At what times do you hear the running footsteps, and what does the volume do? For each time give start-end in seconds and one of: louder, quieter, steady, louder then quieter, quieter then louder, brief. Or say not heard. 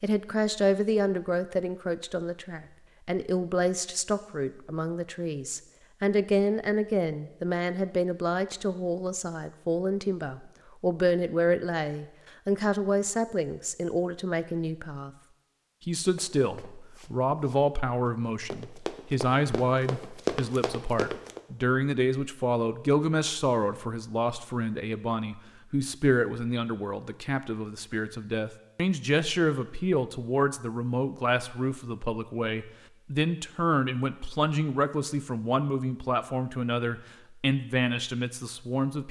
16.0-21.4 louder.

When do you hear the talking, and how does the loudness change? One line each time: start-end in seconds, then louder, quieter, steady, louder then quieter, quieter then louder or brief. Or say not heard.
0.0-15.1 steady
15.8-39.0 steady.